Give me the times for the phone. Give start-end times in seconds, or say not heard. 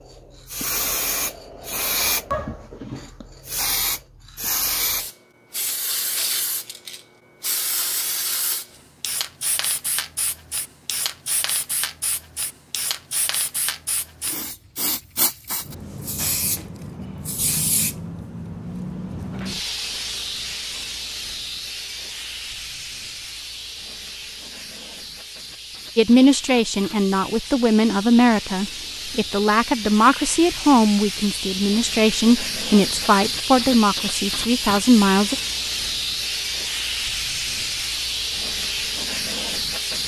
not heard.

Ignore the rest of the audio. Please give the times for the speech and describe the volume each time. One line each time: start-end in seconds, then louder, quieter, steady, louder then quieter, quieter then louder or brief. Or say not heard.
25.9-35.4 steady.